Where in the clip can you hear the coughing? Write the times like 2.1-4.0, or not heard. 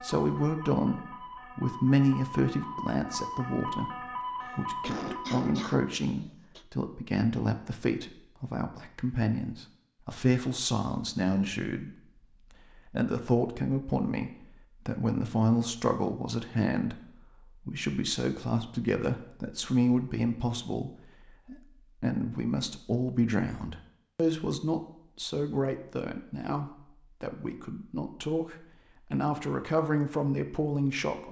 4.4-6.7.